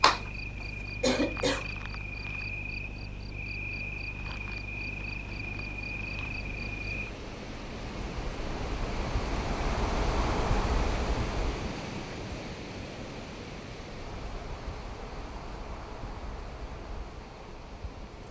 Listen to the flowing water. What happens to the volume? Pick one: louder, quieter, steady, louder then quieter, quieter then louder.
louder then quieter.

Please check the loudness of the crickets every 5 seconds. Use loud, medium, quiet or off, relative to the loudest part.
loud, loud, loud, medium.